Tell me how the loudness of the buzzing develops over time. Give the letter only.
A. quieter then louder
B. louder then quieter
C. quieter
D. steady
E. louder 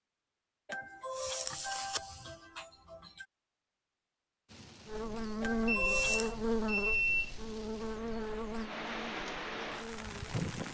C.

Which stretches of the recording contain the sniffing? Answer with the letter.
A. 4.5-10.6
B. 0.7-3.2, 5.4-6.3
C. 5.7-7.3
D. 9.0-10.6
B.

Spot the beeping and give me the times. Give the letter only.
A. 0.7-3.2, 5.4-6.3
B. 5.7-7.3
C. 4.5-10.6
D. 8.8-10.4
B.